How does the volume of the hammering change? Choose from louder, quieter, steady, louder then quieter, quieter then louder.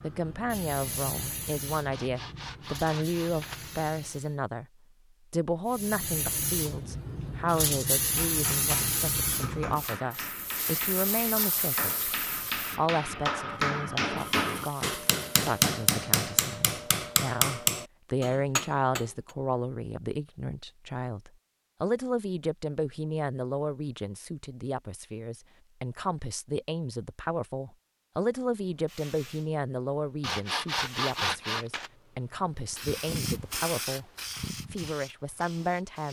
louder.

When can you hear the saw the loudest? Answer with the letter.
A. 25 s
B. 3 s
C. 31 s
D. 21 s
C.